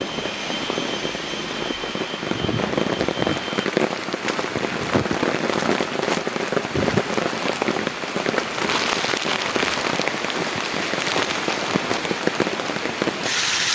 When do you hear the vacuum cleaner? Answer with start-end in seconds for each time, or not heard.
0.0-3.6.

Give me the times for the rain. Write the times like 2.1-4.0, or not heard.
0.0-13.7.